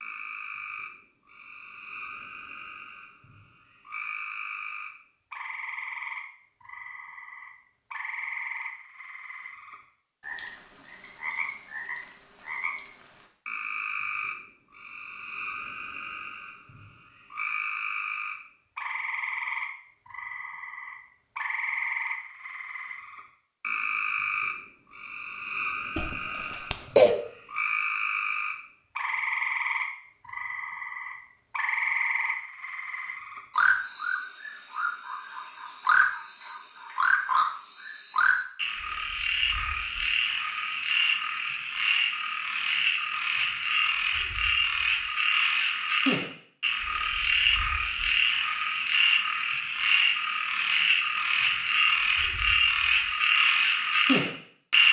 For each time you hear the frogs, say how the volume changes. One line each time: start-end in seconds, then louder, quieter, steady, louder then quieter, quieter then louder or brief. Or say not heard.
0.0-54.8 louder.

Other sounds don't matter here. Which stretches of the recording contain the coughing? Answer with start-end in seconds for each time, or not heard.
25.9-27.2.